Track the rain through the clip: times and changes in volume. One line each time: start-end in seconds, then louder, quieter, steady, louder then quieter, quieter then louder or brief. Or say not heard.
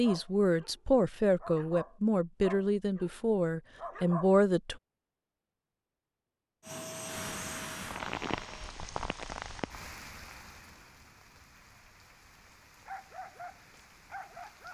7.0-14.6 quieter.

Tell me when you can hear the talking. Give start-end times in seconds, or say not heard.
0.0-4.8.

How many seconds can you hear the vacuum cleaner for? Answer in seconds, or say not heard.
2 s.